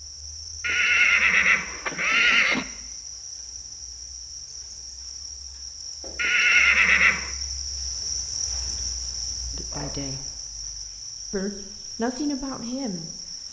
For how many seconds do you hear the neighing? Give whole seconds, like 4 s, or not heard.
4 s.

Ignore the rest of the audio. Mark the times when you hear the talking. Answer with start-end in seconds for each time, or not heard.
9.5-10.2, 11.3-13.4.